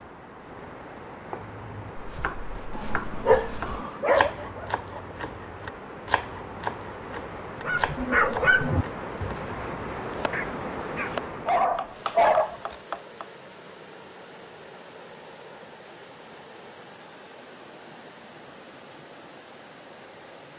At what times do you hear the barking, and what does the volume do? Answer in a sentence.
The barking can be heard briefly from 2.8 to 4.8 s; and from 7.7 to 12.8 s, getting quieter then louder.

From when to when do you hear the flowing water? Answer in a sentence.
The flowing water can be heard from 0.0 to 20.5 s.